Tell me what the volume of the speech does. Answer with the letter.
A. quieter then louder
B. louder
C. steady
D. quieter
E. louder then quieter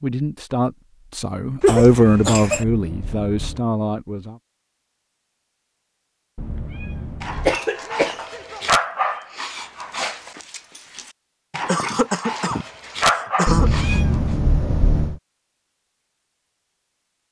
E.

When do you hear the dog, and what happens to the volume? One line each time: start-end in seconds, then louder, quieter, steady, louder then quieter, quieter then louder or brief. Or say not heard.
7.2-14.3 quieter then louder.